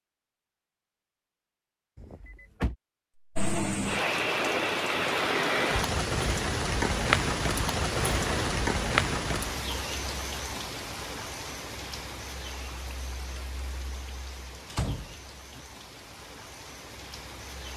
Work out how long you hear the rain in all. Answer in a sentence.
The rain can be heard for 14 seconds in total.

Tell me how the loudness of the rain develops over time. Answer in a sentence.
The volume of the rain goes down.